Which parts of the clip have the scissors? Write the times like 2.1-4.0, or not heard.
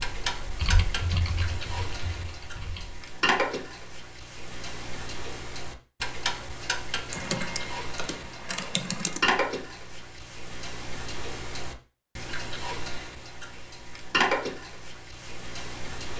not heard.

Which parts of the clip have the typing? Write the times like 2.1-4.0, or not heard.
0.0-3.0, 7.1-9.2.